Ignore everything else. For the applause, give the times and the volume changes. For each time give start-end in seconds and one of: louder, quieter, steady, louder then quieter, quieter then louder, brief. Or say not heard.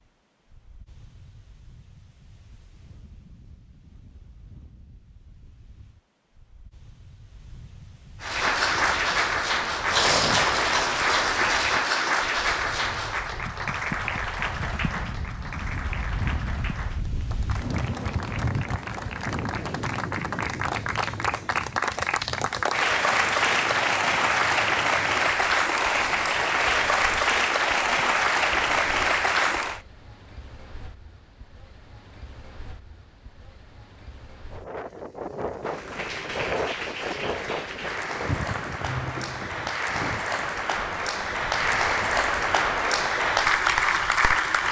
8.2-29.8 quieter then louder
35.6-44.6 louder.